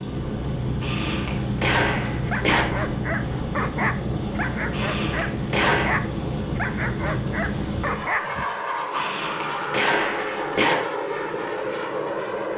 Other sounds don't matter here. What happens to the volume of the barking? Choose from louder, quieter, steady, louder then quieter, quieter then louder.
steady.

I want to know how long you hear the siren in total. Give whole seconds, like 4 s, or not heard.
not heard.